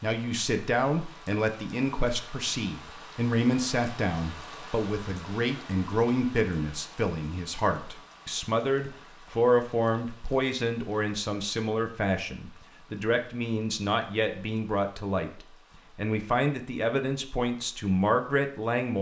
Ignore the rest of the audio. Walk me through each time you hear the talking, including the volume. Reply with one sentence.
The talking can be heard from 0.0 to 18.9 s, at a steady volume.